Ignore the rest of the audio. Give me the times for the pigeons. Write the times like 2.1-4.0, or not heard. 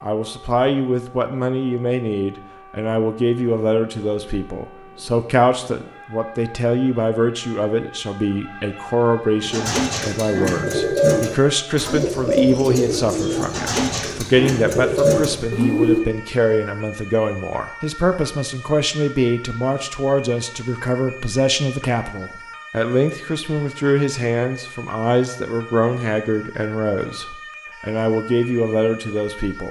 9.4-16.0.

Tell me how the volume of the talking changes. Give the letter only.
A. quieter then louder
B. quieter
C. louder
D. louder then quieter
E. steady
E.